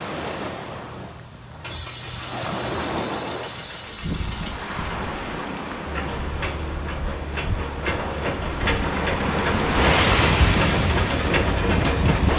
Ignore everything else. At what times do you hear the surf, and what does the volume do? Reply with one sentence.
You can hear the surf from 0.0 to 12.3 s, getting louder.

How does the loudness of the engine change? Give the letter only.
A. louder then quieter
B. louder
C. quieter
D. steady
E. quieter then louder
B.